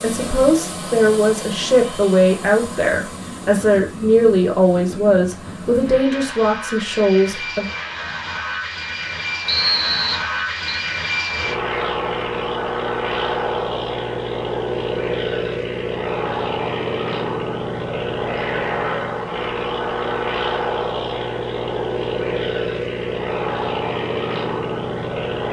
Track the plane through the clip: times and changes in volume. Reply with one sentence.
The plane can be heard from 0.0 to 25.4 s, getting louder.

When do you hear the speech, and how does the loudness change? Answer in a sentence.
You can hear the speech from 0.0 to 7.7 s, at a steady volume.